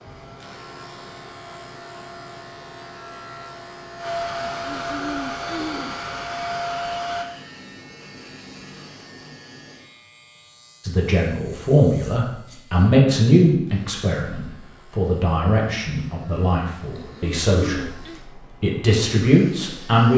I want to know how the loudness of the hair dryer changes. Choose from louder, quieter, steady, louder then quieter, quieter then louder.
louder.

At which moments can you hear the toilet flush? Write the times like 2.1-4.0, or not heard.
not heard.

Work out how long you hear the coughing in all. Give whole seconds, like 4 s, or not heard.
3 s.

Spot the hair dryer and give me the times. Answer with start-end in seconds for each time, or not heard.
0.0-7.2.